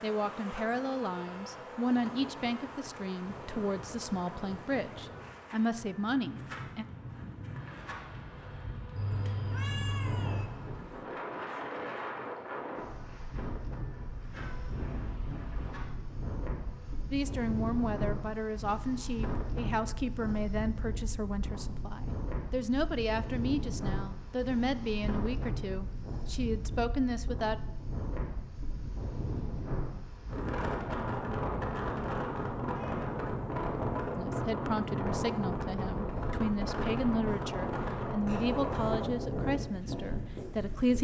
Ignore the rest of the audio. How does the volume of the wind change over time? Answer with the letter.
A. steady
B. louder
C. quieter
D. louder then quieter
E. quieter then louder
B.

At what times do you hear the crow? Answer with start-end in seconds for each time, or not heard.
not heard.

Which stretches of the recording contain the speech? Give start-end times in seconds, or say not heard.
0.0-6.8, 17.1-27.6, 34.1-40.9.